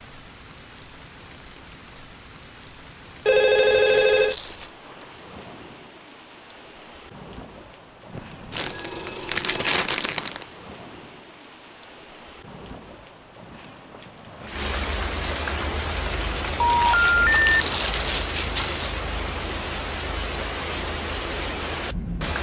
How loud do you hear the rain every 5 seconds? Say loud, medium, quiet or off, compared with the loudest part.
quiet, quiet, medium, loud, loud.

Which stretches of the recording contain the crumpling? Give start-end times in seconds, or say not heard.
3.5-4.7, 8.5-10.4, 16.6-18.9.